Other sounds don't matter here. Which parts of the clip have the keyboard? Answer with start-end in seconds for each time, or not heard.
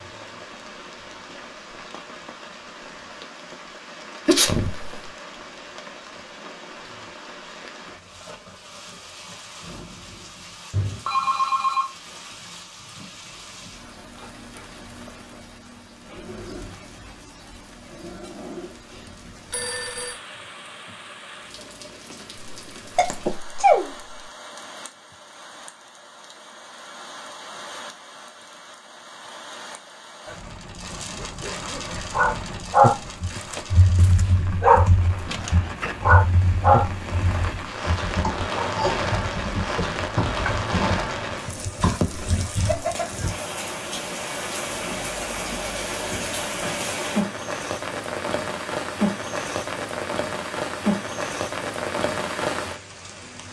33.2-42.9.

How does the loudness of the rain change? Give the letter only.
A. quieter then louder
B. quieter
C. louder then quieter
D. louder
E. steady
D.